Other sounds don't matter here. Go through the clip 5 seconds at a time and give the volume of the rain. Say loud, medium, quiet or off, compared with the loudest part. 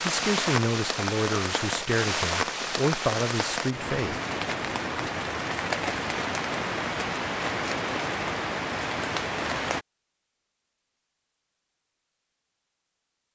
loud, loud, off.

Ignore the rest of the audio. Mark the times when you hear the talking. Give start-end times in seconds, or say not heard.
0.0-4.2.